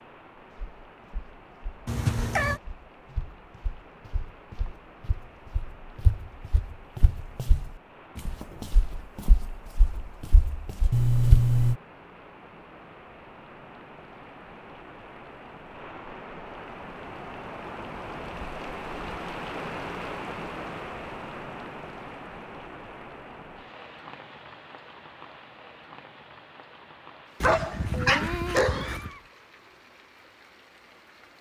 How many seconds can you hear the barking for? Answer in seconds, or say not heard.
2 s.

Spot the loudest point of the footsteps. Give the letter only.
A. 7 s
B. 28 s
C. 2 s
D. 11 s
D.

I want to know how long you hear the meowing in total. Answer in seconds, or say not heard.
3 s.